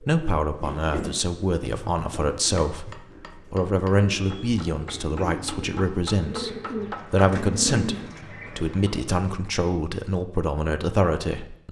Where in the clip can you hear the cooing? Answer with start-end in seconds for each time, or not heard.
0.0-9.2.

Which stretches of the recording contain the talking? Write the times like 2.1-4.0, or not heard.
0.0-11.6.